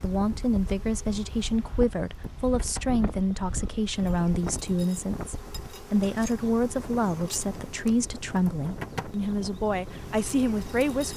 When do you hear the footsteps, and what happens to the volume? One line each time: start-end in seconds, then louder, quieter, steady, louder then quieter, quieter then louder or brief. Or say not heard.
not heard.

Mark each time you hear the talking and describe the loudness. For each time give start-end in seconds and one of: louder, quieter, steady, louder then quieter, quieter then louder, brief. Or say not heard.
0.0-11.1 steady.